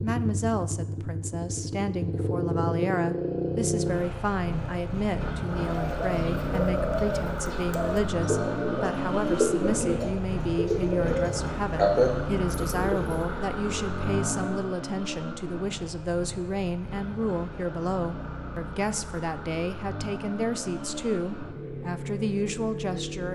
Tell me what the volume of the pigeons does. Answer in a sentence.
The volume of the pigeons goes up.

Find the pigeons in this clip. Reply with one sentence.
You can hear the pigeons from 5.7 to 13.2 s.